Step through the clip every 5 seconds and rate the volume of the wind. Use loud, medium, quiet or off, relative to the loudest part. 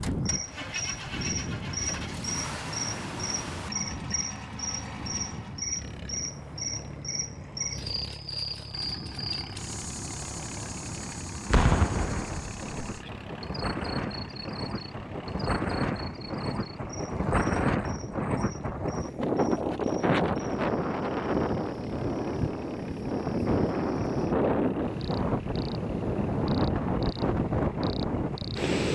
medium, quiet, medium, loud, loud, loud.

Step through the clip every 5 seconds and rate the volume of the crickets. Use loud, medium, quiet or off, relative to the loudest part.
loud, loud, medium, quiet, quiet, medium.